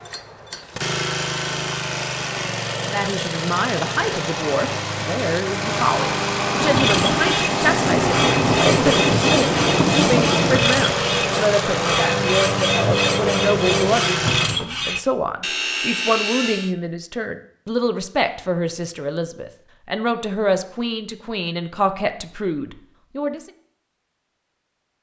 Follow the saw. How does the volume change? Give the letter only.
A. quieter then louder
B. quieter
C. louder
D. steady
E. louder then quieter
D.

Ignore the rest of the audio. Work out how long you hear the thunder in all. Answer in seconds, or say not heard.
4 s.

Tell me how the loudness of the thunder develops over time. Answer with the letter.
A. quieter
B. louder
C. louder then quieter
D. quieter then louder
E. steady
B.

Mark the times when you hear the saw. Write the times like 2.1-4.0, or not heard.
6.6-16.8.